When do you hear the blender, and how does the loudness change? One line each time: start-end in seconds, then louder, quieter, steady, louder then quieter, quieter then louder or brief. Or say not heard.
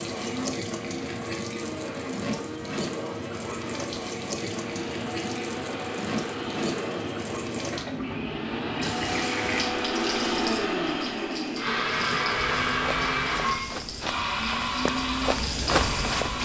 0.1-16.3 louder.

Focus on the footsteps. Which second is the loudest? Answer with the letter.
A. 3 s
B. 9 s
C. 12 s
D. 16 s
D.